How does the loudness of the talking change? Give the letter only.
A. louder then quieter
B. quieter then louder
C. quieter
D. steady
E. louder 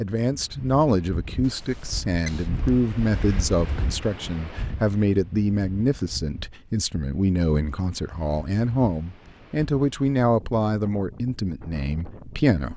D.